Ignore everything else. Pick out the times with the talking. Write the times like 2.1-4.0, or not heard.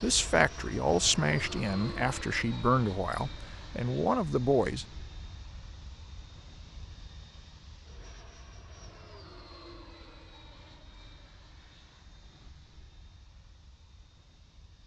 0.0-4.8.